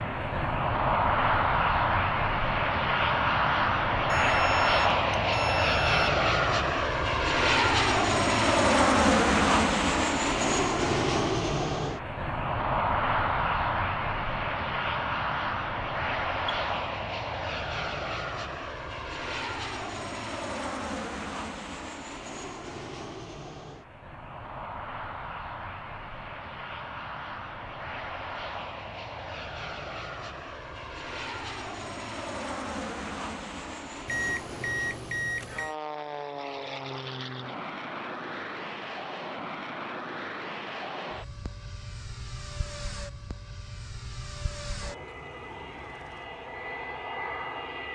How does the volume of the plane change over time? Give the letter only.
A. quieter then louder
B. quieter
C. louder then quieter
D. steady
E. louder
B.